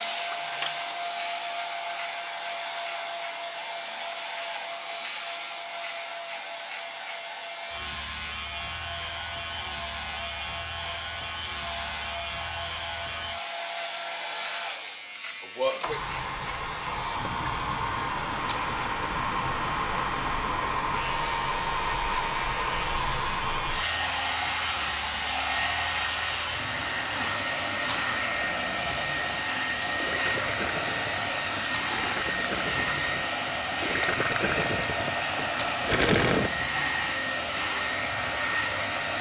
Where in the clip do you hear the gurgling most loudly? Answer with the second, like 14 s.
36 s.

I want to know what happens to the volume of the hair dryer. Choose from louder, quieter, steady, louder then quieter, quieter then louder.
louder.